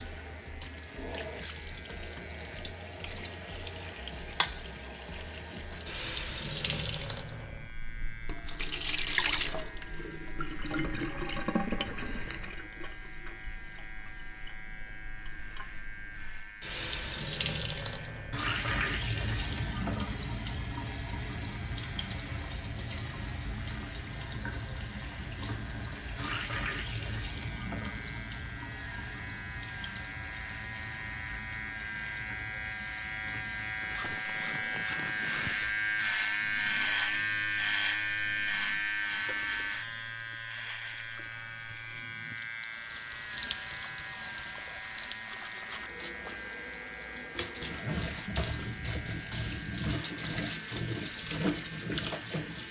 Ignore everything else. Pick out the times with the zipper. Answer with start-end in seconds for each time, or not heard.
11.8-12.6, 33.8-35.6.